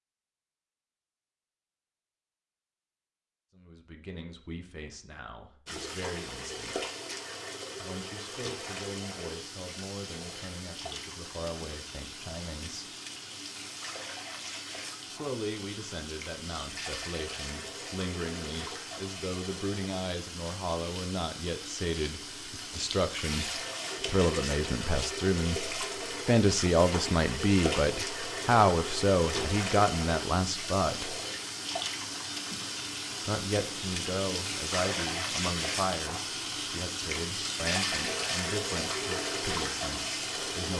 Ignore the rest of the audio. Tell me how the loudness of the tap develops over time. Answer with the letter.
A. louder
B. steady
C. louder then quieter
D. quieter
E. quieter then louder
A.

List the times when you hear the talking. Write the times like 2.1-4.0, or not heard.
3.5-6.8, 7.8-12.9, 15.1-31.2, 33.2-40.7.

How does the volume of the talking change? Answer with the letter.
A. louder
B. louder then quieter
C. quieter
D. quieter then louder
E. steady
B.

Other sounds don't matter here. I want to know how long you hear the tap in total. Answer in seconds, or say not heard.
35 s.